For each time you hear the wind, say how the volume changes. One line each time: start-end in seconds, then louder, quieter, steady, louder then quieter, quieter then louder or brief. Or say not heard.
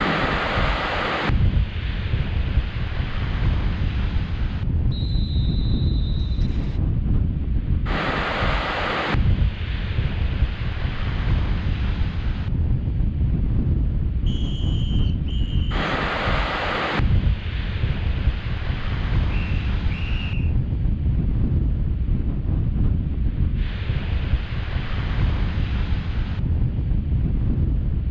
0.0-28.0 steady.